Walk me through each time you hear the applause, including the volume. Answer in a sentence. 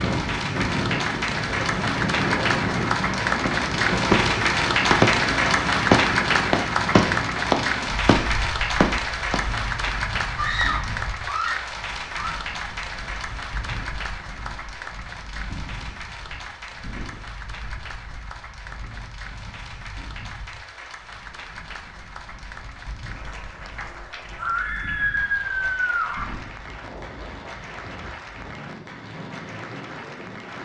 The applause can be heard from 0.0 to 30.5 s, getting quieter.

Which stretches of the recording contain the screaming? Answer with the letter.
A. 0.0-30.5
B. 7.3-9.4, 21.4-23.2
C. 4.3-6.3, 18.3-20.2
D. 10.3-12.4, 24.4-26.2
D.